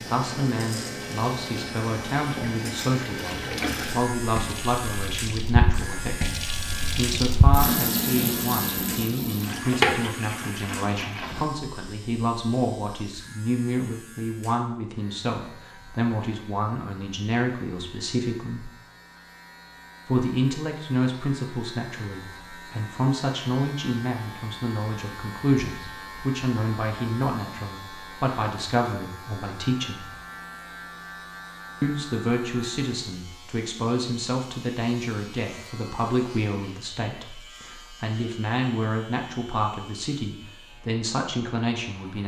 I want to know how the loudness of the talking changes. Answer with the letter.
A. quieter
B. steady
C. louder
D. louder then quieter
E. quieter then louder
B.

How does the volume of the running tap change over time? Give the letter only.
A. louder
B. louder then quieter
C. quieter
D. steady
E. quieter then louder
A.